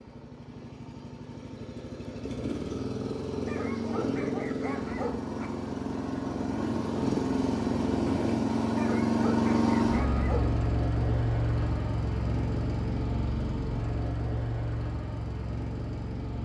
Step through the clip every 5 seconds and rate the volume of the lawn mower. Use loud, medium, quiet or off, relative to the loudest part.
medium, loud, loud, medium.